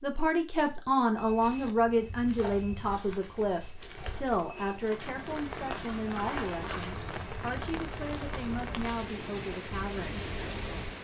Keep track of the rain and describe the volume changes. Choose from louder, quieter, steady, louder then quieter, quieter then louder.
steady.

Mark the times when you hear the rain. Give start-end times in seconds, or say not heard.
4.8-10.9.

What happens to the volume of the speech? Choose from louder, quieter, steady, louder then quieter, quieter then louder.
quieter.